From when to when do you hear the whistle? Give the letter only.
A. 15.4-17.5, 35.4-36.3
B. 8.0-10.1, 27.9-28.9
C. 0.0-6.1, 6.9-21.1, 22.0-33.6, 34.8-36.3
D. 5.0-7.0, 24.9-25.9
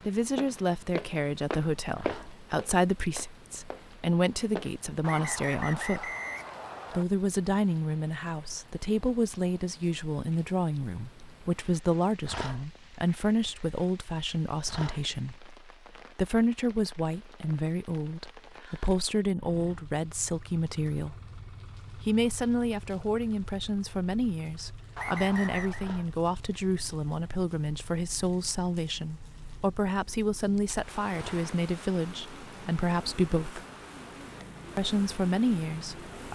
D.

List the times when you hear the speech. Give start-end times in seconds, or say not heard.
0.0-6.1, 6.9-21.1, 22.0-33.6, 34.8-36.3.